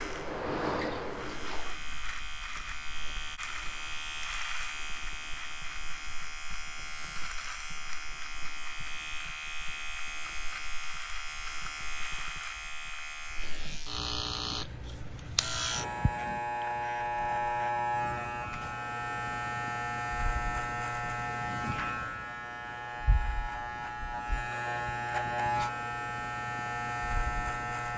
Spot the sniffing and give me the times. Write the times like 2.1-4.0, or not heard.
not heard.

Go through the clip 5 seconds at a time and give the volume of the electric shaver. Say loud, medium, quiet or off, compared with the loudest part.
medium, medium, medium, loud, loud, loud.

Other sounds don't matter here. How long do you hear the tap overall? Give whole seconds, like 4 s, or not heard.
2 s.